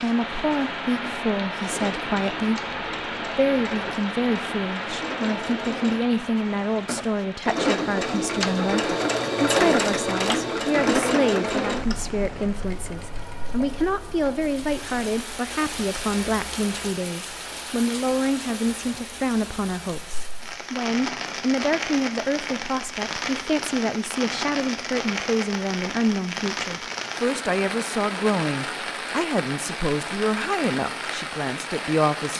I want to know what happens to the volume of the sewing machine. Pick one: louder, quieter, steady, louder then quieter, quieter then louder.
louder then quieter.